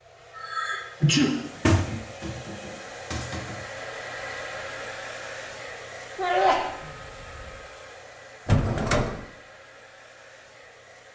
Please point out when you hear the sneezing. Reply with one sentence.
You can hear the sneezing from 0.3 to 1.4 s and from 6.2 to 7.5 s.